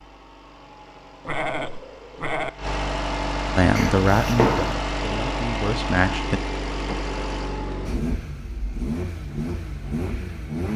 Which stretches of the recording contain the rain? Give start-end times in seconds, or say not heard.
not heard.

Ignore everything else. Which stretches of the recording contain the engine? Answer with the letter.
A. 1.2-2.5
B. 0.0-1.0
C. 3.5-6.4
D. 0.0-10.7
D.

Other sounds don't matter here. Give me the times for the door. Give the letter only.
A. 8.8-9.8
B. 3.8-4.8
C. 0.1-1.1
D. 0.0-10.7
B.